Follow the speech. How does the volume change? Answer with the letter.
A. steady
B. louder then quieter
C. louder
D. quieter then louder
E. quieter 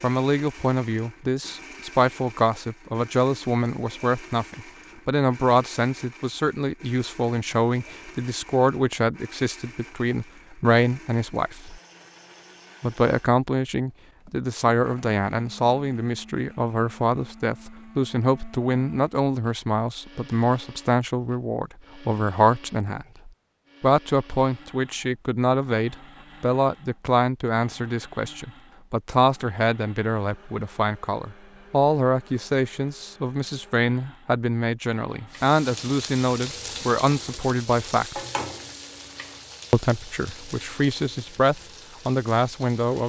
A.